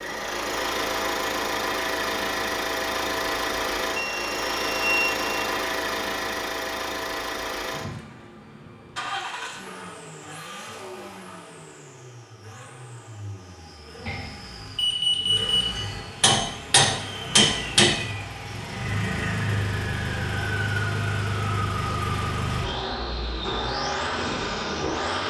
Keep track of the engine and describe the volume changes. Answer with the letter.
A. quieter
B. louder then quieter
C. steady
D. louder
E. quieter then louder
E.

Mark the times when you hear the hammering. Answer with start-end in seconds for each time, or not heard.
15.8-18.1.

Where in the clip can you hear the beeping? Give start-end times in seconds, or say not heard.
4.0-5.3, 14.1-15.8.